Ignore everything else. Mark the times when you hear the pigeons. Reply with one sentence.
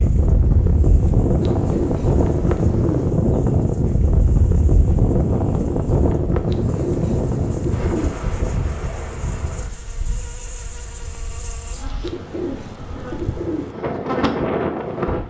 The pigeons can be heard from 1.4 to 3.1 s, from 6.5 to 8.2 s and from 12.0 to 13.8 s.